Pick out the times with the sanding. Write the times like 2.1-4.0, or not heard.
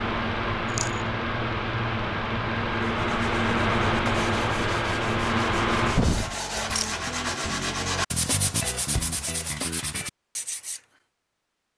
2.9-10.8.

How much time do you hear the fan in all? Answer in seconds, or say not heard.
6 s.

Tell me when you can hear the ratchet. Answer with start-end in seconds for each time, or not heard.
not heard.